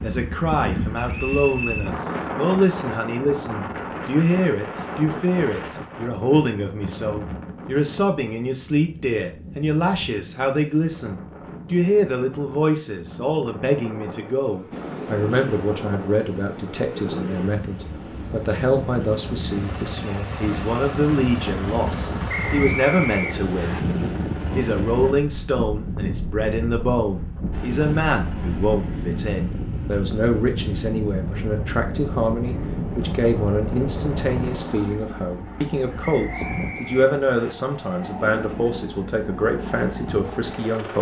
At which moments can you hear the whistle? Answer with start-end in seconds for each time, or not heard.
0.9-1.9, 22.2-23.8, 36.0-37.5.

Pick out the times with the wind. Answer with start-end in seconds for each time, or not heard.
0.0-34.5.